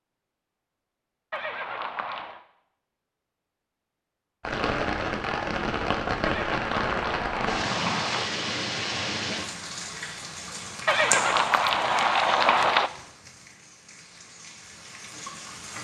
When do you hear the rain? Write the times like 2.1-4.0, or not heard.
4.4-15.7.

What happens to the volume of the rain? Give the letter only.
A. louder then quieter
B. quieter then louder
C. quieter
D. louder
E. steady
C.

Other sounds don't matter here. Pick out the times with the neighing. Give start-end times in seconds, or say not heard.
1.3-2.4, 6.2-8.2, 10.8-12.9.